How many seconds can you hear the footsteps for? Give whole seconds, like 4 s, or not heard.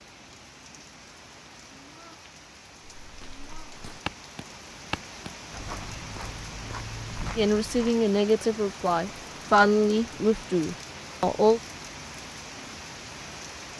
5 s.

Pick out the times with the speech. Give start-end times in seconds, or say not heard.
7.3-11.6.